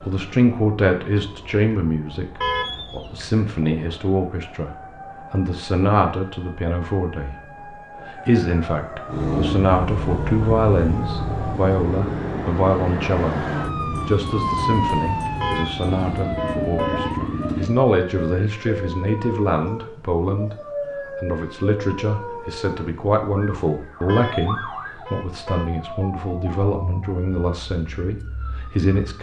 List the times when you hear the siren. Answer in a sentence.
You can hear the siren from 0.0 to 29.1 s.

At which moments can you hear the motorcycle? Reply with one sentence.
The motorcycle can be heard from 9.1 to 17.7 s.